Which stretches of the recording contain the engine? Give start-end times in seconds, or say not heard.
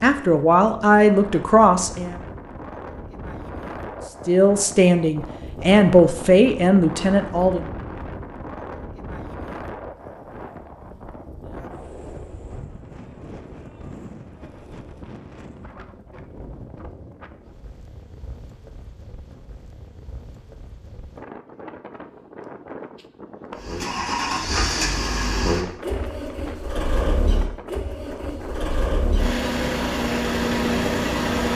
23.6-31.5.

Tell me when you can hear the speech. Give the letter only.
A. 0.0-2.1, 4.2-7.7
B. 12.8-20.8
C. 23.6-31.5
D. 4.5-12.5
A.